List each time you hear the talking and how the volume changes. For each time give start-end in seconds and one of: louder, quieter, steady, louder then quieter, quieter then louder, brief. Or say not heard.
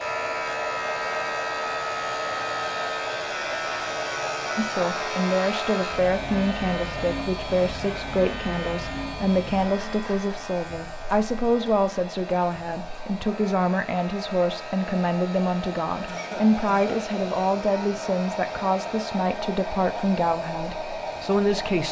4.5-21.8 steady.